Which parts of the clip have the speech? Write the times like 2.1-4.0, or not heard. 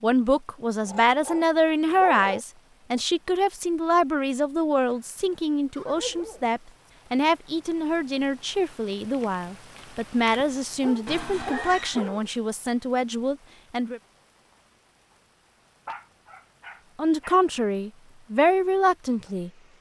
0.0-14.0, 16.9-19.5.